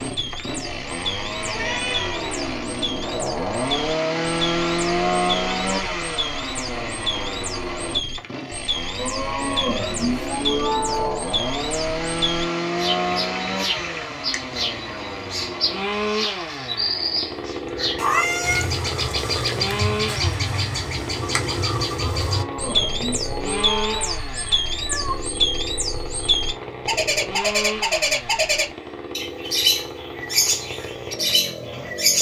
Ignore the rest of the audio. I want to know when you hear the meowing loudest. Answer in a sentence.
The volume of the meowing peaks at 18 seconds.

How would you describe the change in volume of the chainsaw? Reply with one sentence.
The volume of the chainsaw goes down.